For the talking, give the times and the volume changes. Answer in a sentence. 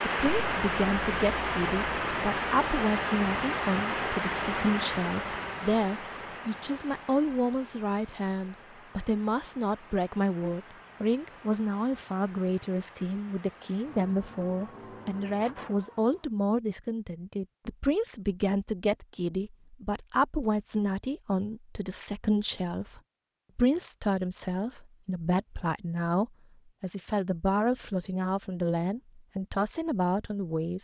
The talking can be heard from 0.0 to 30.8 s, at a steady volume.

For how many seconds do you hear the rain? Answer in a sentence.
The rain can be heard for 16 seconds in total.